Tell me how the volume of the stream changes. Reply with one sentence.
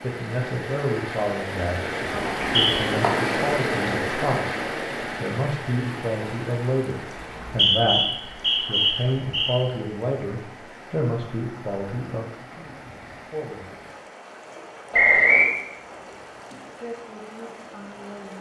The volume of the stream goes down.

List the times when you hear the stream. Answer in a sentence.
You can hear the stream from 0.0 to 18.3 s.